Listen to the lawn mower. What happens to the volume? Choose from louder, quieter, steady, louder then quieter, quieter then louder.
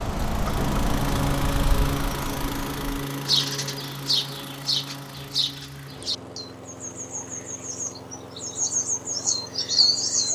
quieter.